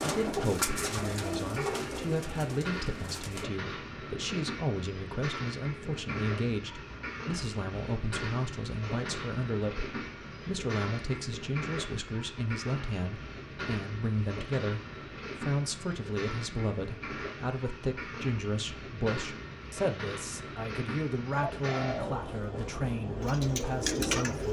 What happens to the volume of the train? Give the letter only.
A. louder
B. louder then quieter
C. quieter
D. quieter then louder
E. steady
E.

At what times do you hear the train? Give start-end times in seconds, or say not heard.
0.0-24.4.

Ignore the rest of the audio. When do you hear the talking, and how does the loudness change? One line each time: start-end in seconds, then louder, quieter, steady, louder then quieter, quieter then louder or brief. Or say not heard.
0.0-14.8 steady
15.4-24.4 steady.